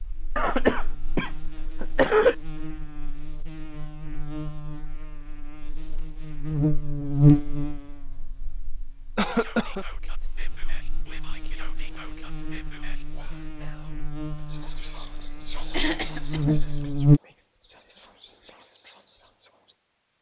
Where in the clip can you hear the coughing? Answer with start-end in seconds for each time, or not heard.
0.3-2.4, 9.2-9.8, 15.7-16.6.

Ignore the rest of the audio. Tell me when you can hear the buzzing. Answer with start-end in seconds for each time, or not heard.
0.0-17.2.